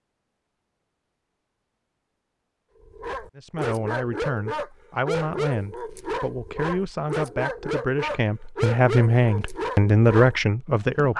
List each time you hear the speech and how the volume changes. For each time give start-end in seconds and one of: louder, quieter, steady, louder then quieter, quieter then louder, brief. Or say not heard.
3.4-11.1 louder.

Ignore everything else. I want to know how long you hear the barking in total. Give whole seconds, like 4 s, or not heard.
8 s.